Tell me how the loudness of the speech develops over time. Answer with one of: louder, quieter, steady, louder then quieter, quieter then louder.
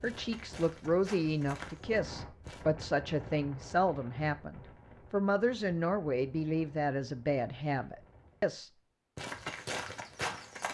steady.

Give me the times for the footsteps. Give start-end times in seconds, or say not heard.
0.0-2.6, 9.2-10.6.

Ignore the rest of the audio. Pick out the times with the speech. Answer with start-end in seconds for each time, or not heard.
0.0-8.7.